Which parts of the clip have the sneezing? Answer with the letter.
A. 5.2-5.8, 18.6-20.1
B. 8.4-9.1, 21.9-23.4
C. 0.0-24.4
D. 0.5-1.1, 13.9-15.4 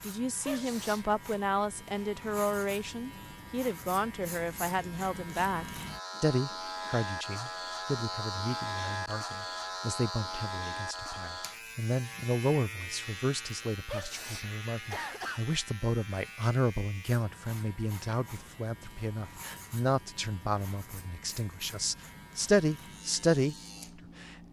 D.